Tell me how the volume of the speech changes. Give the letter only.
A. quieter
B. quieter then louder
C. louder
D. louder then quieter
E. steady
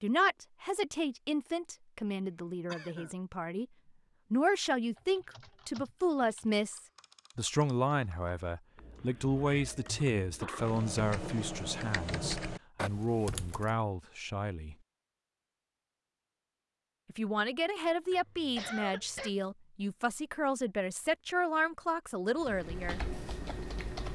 E.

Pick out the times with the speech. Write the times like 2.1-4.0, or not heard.
0.0-3.6, 4.3-14.8, 17.1-23.0.